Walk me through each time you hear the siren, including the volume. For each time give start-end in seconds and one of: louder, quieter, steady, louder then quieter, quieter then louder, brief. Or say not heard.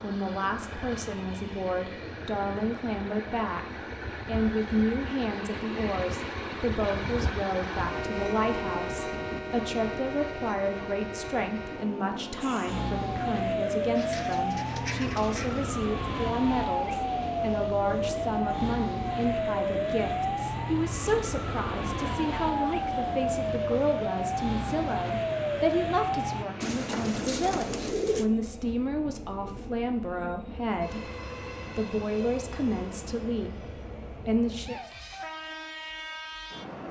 12.4-26.4 steady.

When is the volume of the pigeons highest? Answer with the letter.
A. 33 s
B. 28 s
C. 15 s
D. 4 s
B.